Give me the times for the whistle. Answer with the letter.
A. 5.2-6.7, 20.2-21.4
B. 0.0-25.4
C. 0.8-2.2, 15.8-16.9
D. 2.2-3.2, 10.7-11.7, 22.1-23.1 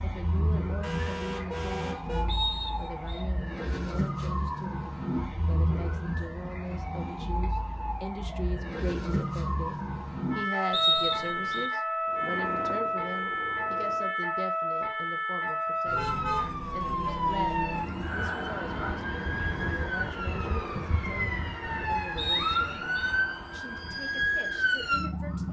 D.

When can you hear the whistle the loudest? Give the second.
11 s.